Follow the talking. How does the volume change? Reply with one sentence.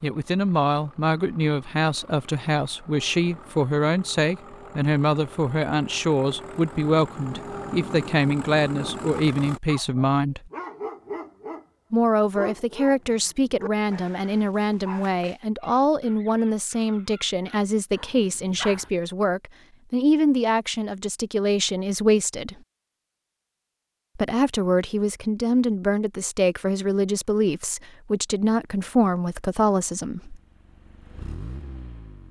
The loudness of the talking stays about the same.